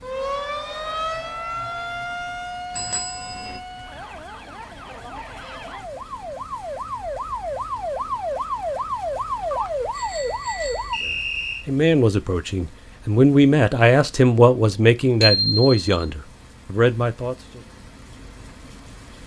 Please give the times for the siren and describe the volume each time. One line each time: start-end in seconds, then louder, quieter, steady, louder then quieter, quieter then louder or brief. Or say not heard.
0.0-11.0 quieter then louder.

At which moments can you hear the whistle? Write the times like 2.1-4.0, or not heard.
10.9-11.7.